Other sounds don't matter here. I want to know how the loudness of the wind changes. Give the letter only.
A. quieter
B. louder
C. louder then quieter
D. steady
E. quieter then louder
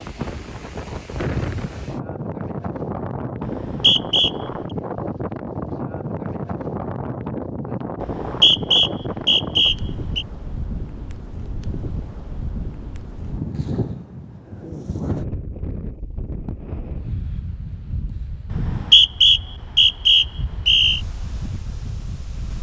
A.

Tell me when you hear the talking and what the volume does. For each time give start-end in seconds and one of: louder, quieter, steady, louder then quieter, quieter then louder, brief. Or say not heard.
not heard.